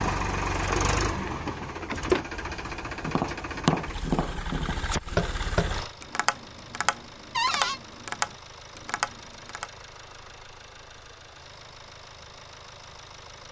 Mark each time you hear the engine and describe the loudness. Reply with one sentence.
You can hear the engine from 0.0 to 13.4 s, getting quieter.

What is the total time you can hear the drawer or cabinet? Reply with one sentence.
The drawer or cabinet can be heard for 2 seconds in total.